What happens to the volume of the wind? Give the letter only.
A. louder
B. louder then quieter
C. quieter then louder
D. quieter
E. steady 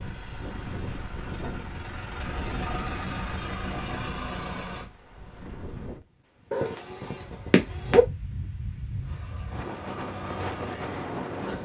C.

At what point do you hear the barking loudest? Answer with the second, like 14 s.
8 s.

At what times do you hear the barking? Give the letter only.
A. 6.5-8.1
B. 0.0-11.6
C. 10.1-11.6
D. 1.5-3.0
A.